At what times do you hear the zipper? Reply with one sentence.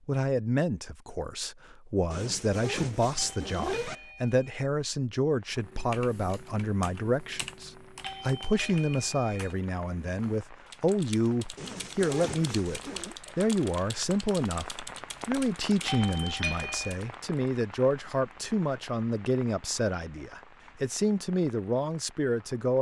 You can hear the zipper from 2.1 to 4.0 s and from 11.6 to 13.2 s.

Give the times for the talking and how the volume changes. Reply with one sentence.
You can hear the talking from 0.1 to 22.7 s, at a steady volume.